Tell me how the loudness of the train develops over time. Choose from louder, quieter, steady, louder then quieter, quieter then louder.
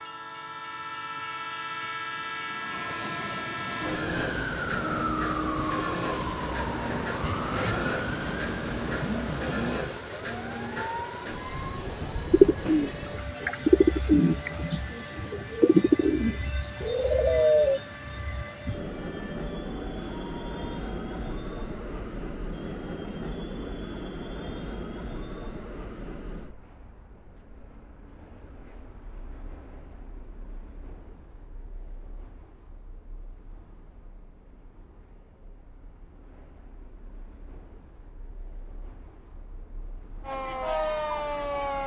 quieter.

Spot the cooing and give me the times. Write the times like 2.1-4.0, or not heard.
11.8-17.8.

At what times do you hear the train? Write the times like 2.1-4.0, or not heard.
0.0-41.8.